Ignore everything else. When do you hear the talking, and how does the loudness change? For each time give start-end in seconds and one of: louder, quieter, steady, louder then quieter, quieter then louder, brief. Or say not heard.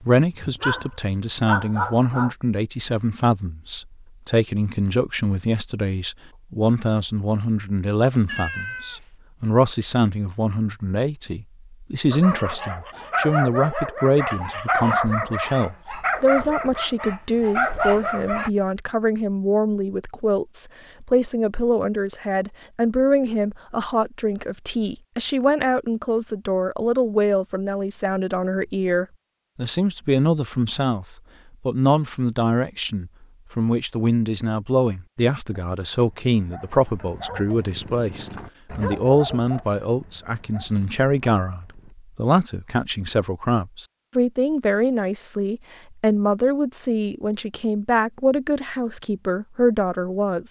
0.0-50.4 steady.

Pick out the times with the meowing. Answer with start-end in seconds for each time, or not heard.
8.2-9.1.